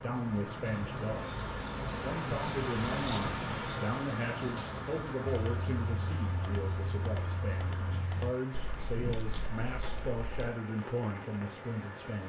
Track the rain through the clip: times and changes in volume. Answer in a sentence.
The rain can be heard from 0.0 to 12.2 s, getting quieter.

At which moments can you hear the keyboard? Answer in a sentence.
The keyboard can be heard from 5.2 to 10.5 s.